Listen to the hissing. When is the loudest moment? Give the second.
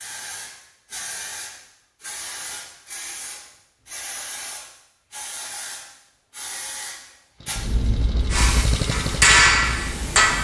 8 s.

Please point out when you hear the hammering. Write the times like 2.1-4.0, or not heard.
8.3-10.4.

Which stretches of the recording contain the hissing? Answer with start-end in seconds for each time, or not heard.
0.0-10.3.